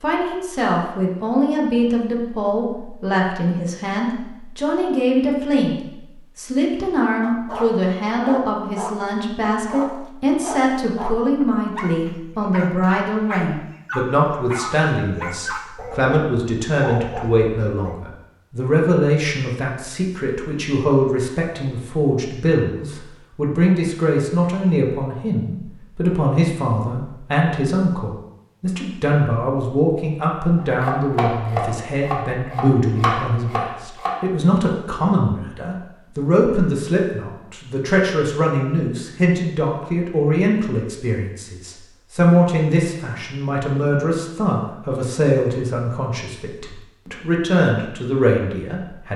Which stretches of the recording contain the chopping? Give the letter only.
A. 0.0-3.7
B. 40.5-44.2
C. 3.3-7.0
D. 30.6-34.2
D.